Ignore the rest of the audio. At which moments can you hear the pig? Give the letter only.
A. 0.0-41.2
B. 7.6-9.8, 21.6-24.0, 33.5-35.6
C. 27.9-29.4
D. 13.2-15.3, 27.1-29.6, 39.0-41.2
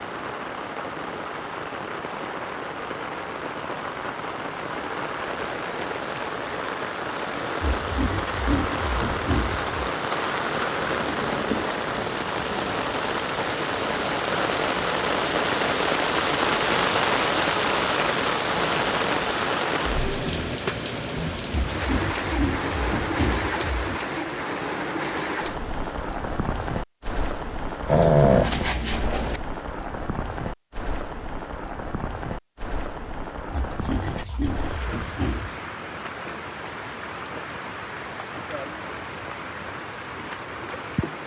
B.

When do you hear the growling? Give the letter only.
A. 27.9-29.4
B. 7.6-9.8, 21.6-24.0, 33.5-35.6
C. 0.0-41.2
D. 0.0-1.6
A.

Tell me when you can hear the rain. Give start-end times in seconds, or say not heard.
0.0-41.2.